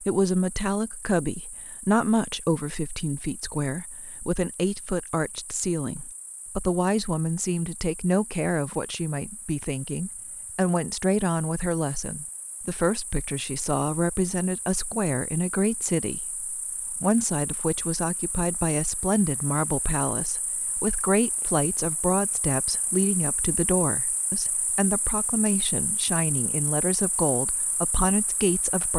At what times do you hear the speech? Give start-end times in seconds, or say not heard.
0.0-28.9.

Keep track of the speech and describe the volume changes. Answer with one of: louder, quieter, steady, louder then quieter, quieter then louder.
steady.